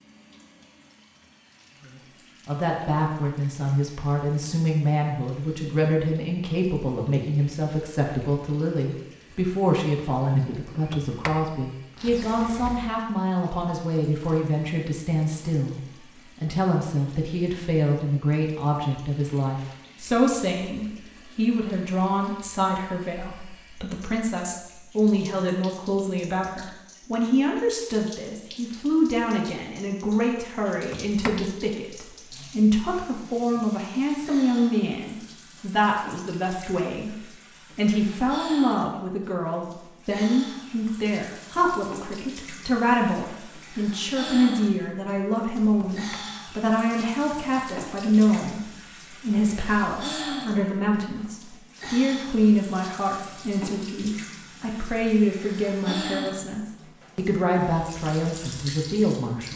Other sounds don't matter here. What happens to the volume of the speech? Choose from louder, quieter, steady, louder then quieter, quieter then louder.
steady.